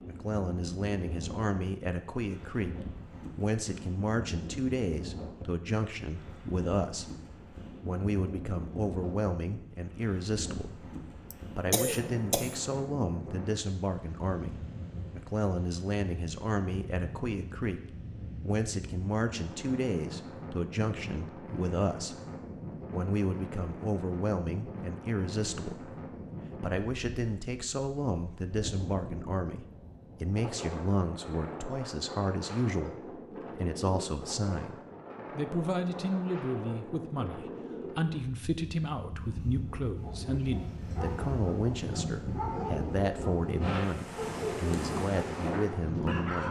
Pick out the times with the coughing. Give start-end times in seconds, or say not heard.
11.3-12.6.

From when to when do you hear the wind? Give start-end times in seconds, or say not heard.
0.0-46.4.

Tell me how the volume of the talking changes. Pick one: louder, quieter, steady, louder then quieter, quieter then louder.
steady.